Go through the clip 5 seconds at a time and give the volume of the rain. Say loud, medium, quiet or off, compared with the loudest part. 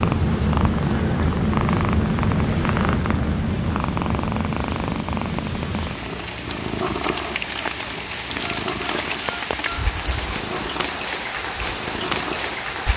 quiet, loud, loud.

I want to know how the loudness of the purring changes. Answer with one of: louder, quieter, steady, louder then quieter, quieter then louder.
quieter.